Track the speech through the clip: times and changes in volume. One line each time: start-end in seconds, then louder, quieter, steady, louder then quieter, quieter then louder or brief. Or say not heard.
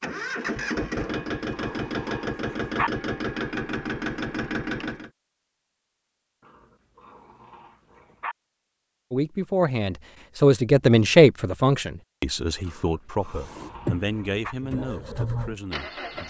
9.1-16.2 quieter.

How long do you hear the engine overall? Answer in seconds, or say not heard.
8 s.